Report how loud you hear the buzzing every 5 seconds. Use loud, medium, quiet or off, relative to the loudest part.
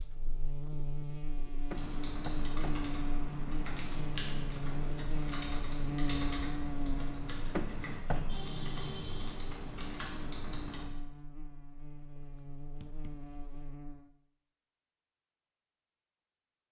loud, loud, medium, off.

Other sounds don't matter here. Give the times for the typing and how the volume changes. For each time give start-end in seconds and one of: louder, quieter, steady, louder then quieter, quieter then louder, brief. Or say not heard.
1.7-10.8 steady.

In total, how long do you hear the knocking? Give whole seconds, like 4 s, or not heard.
3 s.